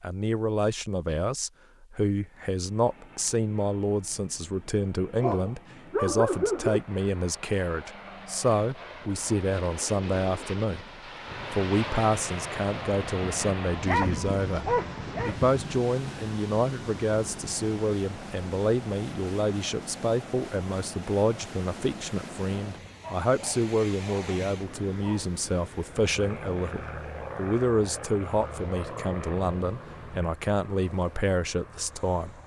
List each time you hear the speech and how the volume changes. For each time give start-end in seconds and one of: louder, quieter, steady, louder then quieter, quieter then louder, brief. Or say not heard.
0.0-32.4 steady.